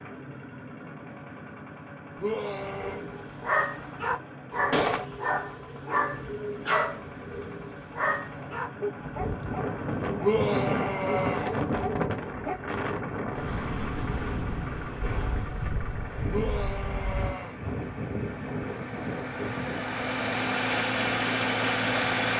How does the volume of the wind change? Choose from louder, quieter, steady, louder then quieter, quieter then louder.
quieter.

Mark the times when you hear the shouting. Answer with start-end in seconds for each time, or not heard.
2.1-3.0, 10.2-11.5, 16.2-17.6.